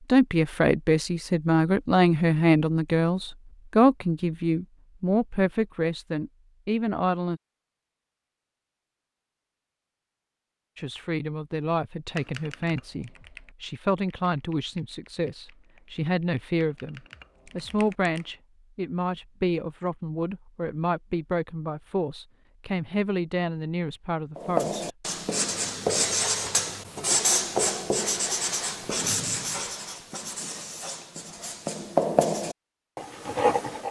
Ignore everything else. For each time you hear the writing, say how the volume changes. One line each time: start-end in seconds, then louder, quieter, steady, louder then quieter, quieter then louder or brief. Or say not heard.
24.4-33.8 quieter then louder.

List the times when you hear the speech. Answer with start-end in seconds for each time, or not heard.
0.1-7.4, 10.8-24.9.